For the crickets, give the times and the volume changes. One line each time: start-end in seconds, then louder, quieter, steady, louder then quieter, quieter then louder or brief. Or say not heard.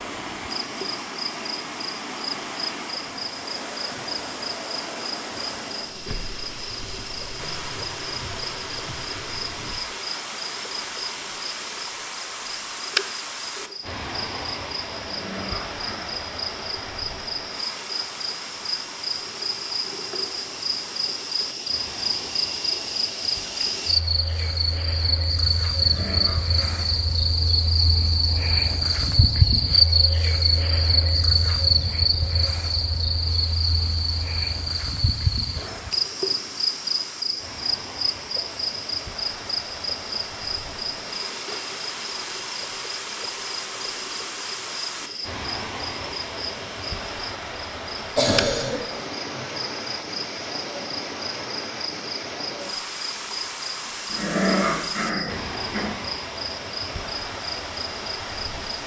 0.0-58.8 louder then quieter.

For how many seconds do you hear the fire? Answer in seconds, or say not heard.
not heard.